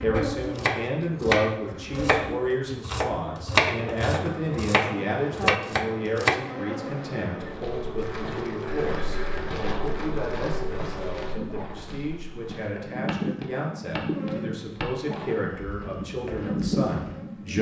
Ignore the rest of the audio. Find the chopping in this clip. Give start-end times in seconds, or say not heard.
0.1-6.3.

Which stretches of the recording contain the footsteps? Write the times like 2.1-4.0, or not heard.
7.4-17.2.